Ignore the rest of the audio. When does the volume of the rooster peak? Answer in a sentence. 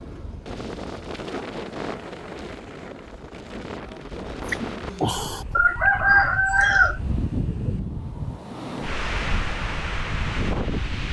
The volume of the rooster peaks at 6 seconds.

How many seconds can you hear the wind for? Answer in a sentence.
The wind can be heard for 11 seconds in total.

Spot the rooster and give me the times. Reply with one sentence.
The rooster can be heard from 4.1 to 7.7 s.